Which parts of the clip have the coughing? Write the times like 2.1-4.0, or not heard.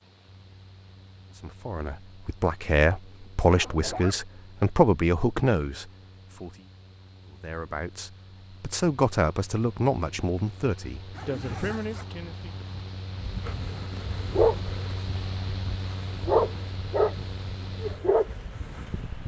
not heard.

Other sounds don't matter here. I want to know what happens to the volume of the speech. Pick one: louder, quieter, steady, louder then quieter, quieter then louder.
quieter.